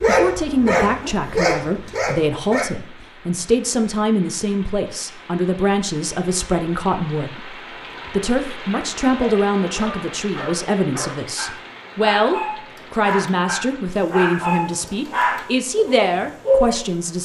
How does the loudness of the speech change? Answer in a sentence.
The loudness of the speech stays about the same.